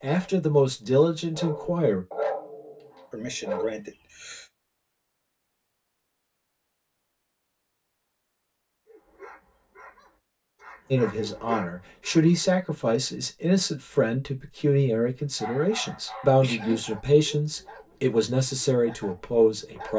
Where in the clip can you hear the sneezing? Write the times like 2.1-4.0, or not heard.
3.1-4.5, 16.4-16.9.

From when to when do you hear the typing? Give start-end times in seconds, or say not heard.
not heard.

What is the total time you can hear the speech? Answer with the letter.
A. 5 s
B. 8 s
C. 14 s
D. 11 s
D.